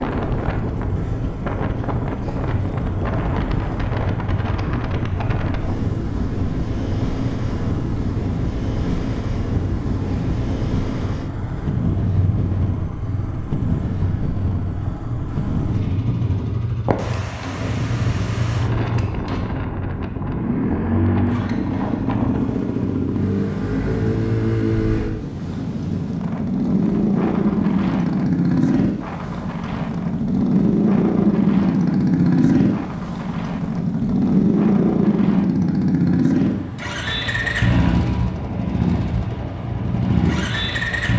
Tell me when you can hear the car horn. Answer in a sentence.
You can't hear the car horn here.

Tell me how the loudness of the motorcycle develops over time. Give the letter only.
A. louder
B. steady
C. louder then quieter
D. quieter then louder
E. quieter
A.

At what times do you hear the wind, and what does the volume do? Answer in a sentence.
You can hear the wind from 0.0 to 41.0 s, getting quieter.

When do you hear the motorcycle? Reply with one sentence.
You can hear the motorcycle from 0.0 to 41.1 s.